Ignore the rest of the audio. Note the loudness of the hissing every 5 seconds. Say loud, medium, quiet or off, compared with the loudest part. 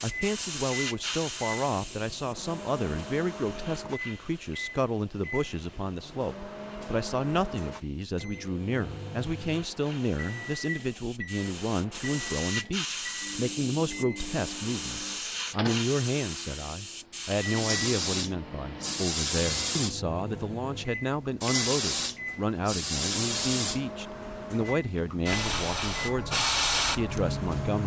medium, quiet, medium, loud, loud, loud.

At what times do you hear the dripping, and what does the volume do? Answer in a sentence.
You can't hear the dripping here.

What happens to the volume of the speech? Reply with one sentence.
The loudness of the speech stays about the same.